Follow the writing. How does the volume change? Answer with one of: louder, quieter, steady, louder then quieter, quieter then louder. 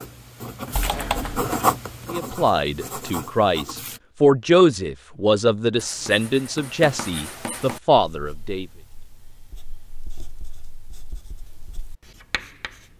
quieter then louder.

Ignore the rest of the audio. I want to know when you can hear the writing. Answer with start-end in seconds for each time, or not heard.
0.0-4.0, 5.8-12.9.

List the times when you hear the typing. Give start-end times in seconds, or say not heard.
0.8-1.5.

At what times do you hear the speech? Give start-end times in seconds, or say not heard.
2.1-8.7.